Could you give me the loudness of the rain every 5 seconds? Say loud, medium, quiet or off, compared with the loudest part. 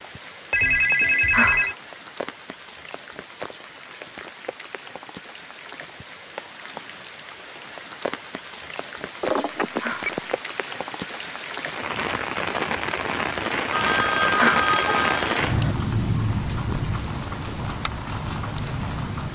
quiet, medium, loud, loud.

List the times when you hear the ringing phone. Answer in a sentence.
You can hear the ringing phone from 0.5 to 1.8 s, from 9.2 to 10.3 s and from 13.7 to 15.8 s.